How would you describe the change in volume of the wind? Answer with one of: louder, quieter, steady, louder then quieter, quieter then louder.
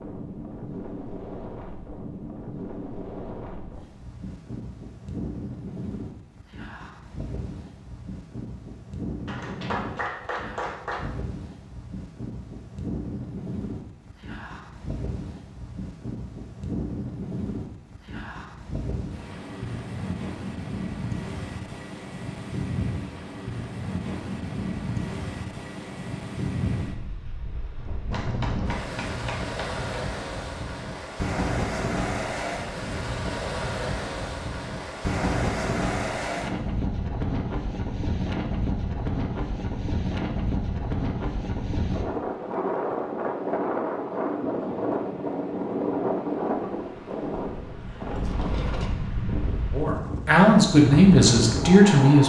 louder.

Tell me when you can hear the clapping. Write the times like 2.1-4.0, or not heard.
9.2-11.1, 28.1-29.9.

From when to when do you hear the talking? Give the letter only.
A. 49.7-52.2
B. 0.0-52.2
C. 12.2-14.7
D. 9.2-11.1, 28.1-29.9
A.